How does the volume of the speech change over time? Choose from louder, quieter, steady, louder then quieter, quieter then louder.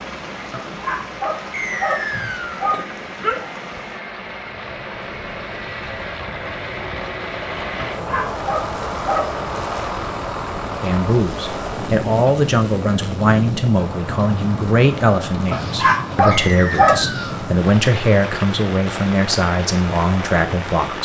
steady.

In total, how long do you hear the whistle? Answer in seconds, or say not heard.
2 s.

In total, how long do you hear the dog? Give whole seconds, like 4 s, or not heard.
6 s.